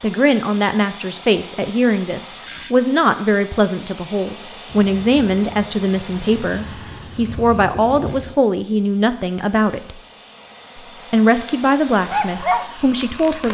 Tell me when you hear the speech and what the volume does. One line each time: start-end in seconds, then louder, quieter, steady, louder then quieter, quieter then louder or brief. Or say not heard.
0.0-10.0 steady
10.8-13.4 brief.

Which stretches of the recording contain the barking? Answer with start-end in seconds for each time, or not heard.
11.9-13.4.